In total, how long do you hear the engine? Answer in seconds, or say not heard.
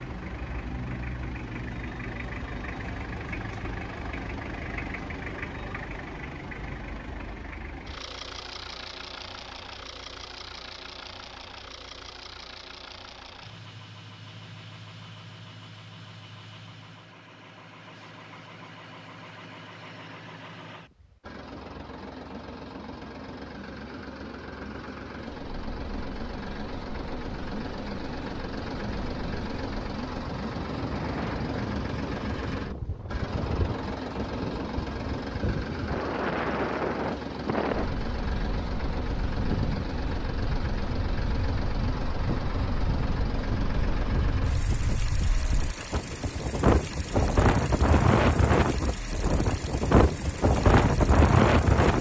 52 s.